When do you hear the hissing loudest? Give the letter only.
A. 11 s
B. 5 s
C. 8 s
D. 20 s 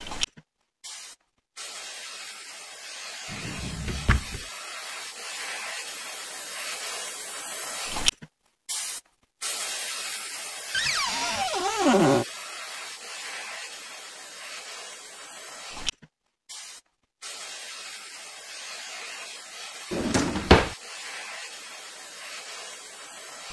C.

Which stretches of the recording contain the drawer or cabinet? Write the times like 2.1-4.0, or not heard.
3.3-4.4, 10.7-12.2, 19.9-20.8.